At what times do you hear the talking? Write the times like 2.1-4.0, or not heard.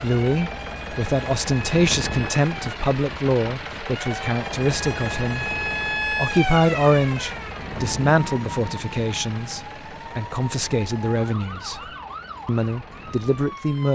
0.0-11.8, 12.4-13.9.